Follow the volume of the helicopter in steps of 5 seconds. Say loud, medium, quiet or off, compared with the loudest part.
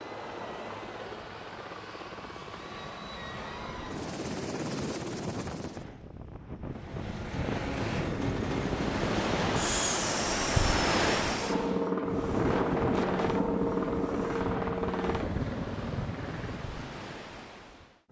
medium, loud, loud, medium.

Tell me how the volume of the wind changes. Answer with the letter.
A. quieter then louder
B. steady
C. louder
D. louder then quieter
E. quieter
D.